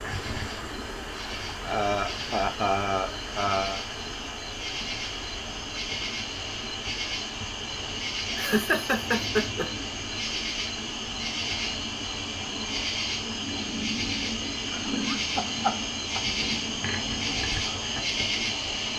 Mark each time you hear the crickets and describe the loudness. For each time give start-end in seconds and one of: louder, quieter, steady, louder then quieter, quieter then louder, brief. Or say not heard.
0.0-18.9 louder.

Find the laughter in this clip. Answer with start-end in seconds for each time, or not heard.
1.6-3.8, 8.3-9.7, 14.7-16.2.